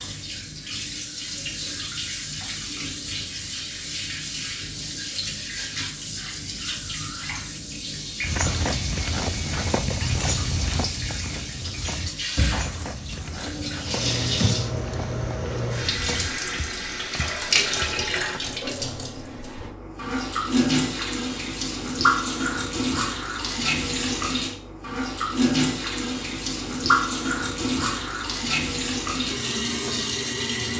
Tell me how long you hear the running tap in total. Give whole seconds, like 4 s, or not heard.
31 s.